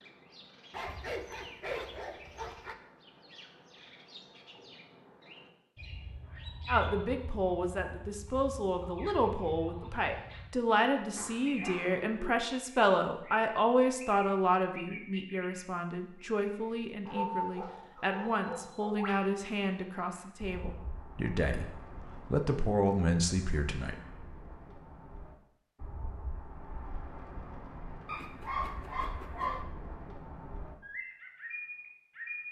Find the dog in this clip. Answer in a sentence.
The dog can be heard from 0.7 to 2.8 s, from 11.2 to 12.3 s, from 17.1 to 19.0 s and from 28.1 to 29.6 s.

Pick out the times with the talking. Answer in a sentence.
The talking can be heard from 6.7 to 23.9 s.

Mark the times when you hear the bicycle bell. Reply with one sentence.
The bicycle bell can't be heard in this clip.